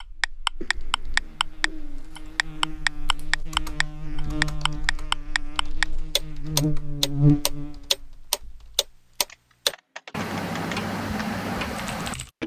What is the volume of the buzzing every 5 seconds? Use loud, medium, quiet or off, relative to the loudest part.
quiet, loud, off.